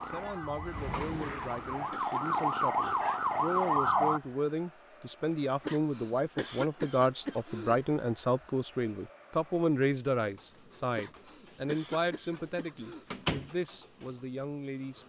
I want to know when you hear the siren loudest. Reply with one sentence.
The loudest moment of the siren is at 4 seconds.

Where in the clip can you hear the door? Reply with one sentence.
The door can be heard from 13.1 to 13.5 s.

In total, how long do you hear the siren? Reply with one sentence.
You can hear the siren for 4 seconds altogether.